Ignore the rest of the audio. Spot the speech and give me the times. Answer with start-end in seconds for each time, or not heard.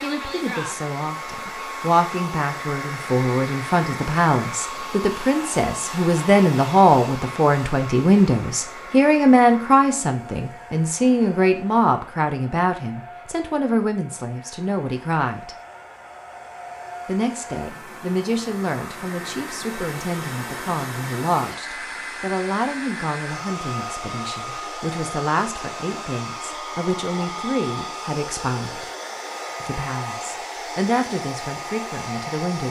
0.0-15.6, 17.1-28.9, 29.6-32.6.